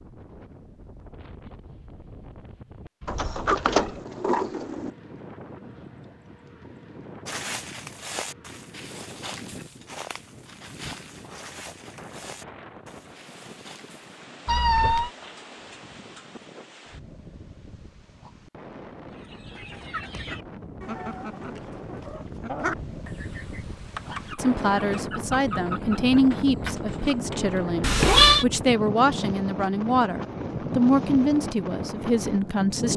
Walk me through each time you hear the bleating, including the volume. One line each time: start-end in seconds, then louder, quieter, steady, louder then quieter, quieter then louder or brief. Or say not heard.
not heard.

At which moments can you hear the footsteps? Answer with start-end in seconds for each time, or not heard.
7.2-14.1.